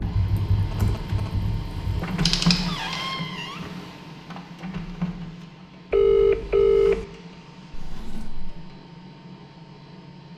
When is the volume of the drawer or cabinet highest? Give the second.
3 s.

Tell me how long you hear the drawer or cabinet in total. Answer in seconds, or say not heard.
2 s.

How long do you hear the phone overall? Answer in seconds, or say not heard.
2 s.